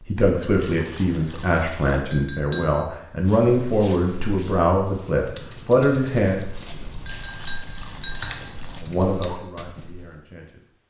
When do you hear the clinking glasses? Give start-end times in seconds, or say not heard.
2.1-2.8, 7.0-8.4.